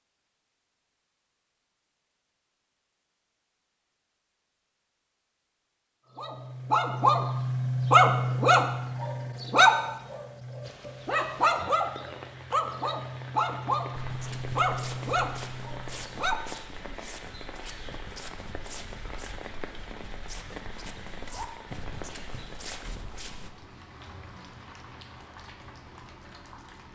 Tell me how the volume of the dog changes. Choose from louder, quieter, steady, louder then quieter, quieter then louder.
quieter.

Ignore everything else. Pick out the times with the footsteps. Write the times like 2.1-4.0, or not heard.
13.9-23.5.